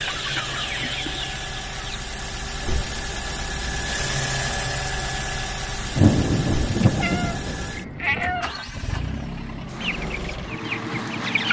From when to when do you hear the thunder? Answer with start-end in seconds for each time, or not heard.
5.8-8.6.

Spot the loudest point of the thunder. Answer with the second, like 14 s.
6 s.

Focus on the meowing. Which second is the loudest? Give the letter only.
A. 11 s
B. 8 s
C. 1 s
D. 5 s
B.